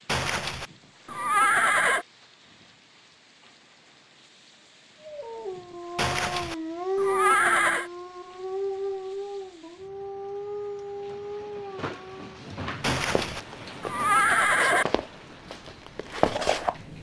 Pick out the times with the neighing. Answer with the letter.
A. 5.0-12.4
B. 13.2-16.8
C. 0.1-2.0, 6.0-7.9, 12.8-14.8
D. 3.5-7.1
C.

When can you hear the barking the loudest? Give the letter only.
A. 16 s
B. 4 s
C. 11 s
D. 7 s
D.